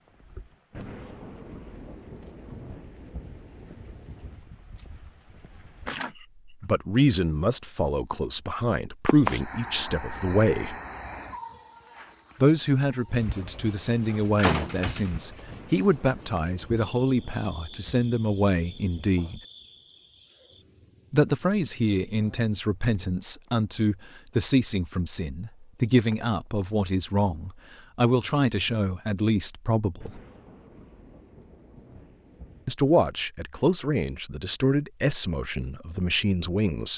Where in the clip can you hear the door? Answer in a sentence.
The door can be heard from 14.1 to 15.8 s.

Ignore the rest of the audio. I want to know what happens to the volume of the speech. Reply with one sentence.
The volume of the speech stays about the same.